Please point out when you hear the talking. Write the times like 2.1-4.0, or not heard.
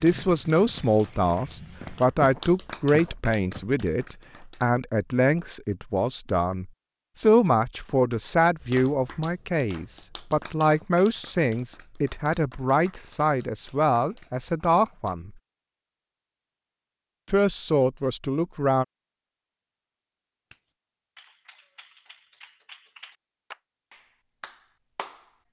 0.0-15.3, 17.3-18.9.